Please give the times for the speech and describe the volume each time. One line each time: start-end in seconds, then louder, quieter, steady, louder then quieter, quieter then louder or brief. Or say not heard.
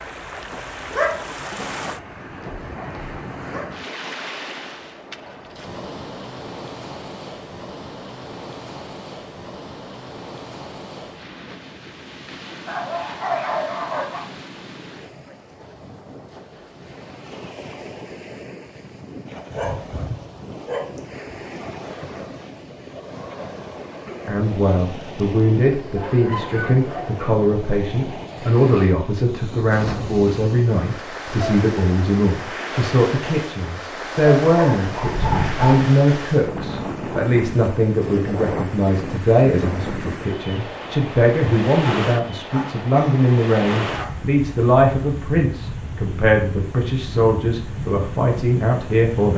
24.2-49.3 steady.